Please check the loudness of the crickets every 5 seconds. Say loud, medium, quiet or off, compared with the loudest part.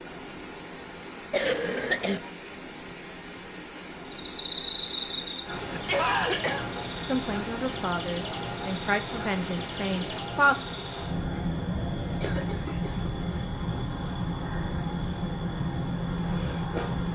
loud, medium, loud, loud.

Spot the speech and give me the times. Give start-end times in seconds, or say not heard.
7.0-10.6.